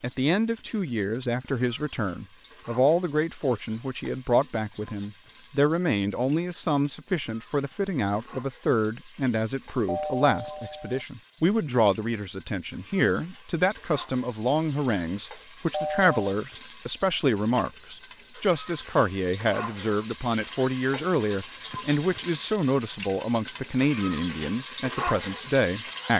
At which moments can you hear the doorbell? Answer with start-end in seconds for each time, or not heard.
9.8-11.1, 15.7-16.1.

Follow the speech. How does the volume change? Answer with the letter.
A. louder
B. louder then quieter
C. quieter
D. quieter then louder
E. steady
E.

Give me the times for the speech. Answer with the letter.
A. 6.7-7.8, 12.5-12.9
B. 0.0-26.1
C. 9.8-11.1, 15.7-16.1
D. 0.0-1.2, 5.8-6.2
B.